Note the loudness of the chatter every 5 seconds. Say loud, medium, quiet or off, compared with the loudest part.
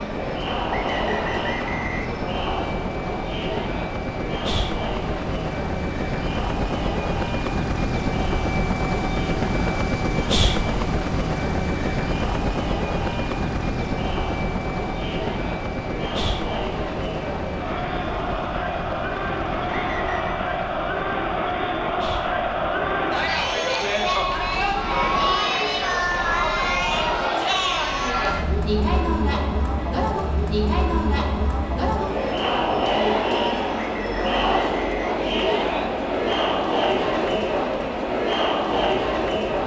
medium, medium, medium, medium, loud, loud, loud, loud.